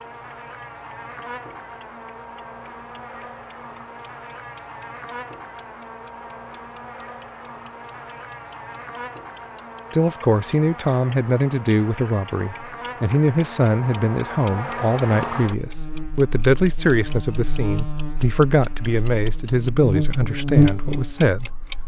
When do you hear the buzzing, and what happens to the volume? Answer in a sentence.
The buzzing can be heard from 0.0 to 21.8 s, getting louder.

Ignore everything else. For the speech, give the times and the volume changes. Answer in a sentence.
You can hear the speech from 9.9 to 21.6 s, at a steady volume.